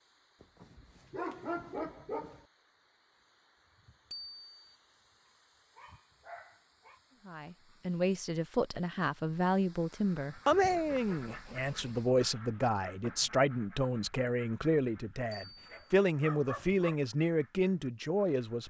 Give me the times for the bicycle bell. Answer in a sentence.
You can hear the bicycle bell from 4.1 to 4.8 s and from 15.3 to 15.9 s.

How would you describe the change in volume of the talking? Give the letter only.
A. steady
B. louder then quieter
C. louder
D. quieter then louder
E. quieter
A.